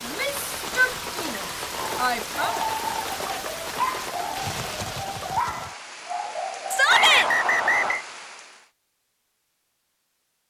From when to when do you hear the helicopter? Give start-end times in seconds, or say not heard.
not heard.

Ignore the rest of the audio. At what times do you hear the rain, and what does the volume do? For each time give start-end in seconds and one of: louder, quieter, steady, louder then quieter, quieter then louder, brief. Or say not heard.
0.0-8.7 quieter.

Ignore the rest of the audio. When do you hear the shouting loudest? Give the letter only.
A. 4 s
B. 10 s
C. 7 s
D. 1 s
C.